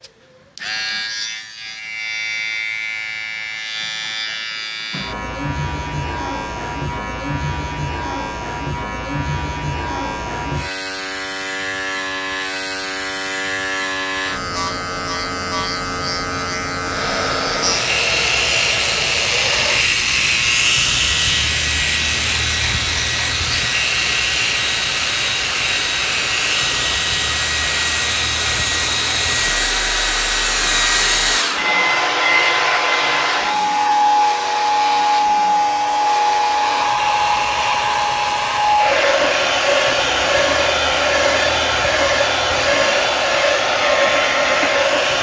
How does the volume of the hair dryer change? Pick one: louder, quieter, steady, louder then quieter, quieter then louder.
louder.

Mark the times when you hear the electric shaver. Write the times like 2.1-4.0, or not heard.
0.0-45.1.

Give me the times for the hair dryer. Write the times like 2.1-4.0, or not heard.
16.8-45.1.